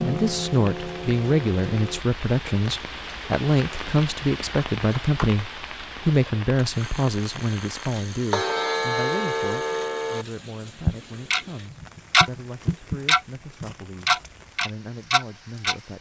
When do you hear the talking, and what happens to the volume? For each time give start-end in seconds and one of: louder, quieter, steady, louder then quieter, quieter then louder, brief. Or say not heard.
0.0-15.9 quieter.